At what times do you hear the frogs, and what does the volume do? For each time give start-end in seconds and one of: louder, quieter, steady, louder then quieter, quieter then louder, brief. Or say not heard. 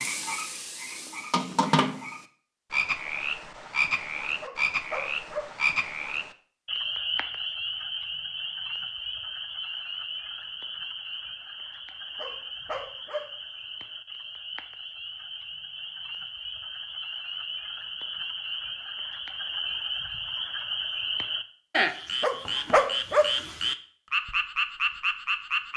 0.0-25.7 quieter then louder.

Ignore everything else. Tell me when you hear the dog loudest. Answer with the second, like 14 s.
23 s.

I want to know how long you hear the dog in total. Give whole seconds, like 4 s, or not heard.
3 s.